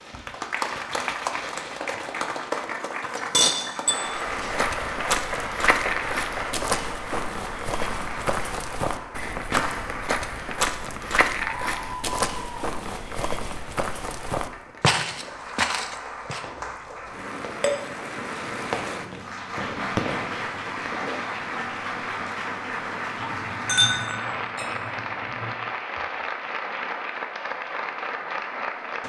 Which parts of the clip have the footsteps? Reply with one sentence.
You can hear the footsteps from 4.0 to 16.4 s.